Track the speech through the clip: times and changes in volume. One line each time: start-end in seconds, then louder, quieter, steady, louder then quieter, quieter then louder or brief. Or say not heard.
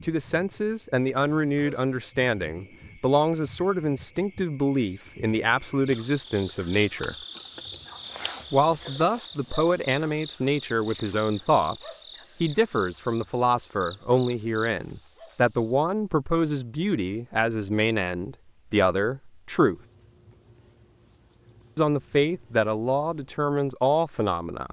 0.0-7.2 steady
8.5-19.8 steady
21.8-24.6 brief.